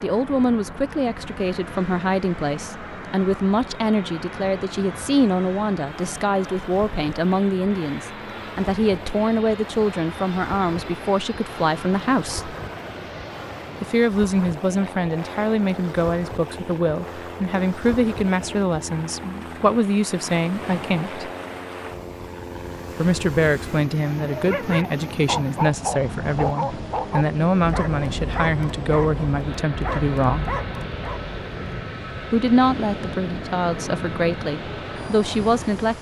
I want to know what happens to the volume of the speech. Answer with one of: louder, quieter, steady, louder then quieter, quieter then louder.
steady.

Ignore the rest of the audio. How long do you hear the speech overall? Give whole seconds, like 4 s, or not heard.
31 s.